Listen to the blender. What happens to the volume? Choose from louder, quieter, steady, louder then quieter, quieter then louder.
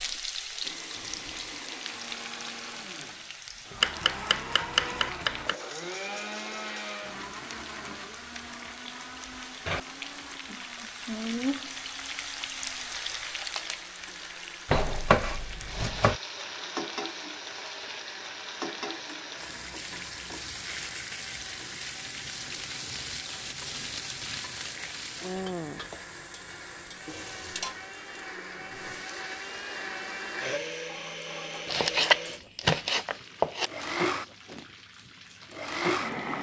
quieter then louder.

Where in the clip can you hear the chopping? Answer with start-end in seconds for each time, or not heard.
3.8-5.5, 14.7-16.2, 31.6-33.7.